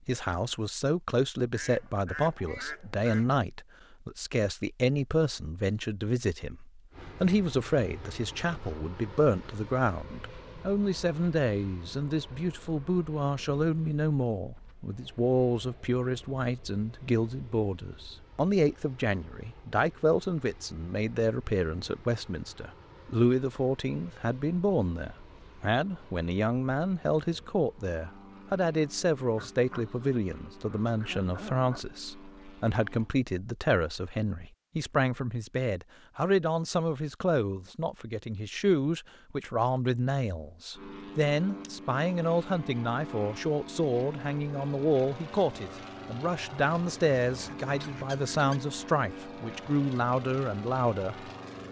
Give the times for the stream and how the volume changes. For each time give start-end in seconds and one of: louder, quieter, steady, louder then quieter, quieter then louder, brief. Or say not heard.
not heard.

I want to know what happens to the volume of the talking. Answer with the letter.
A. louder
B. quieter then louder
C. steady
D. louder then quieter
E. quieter
C.